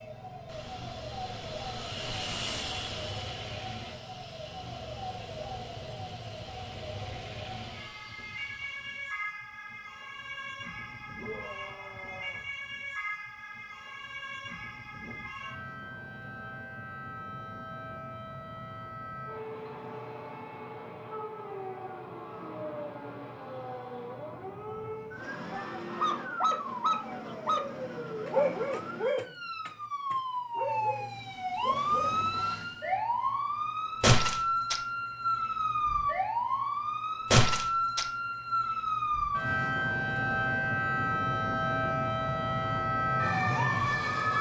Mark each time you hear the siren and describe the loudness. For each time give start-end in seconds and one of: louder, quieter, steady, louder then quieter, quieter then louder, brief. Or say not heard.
0.0-44.3 louder.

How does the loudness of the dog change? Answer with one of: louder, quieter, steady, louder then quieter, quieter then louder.
quieter.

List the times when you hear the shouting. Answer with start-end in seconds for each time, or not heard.
11.2-12.4, 25.5-26.4.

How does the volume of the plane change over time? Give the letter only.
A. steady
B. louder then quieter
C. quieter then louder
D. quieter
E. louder
D.